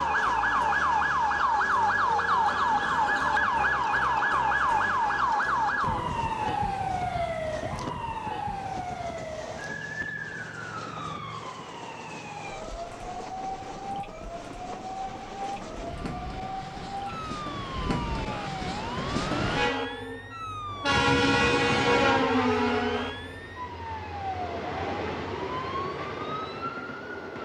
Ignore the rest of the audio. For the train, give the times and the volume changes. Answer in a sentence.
You can hear the train from 0.0 to 27.4 s, getting louder.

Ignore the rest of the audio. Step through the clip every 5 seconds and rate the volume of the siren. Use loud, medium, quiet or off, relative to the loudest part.
loud, medium, quiet, quiet, quiet, quiet.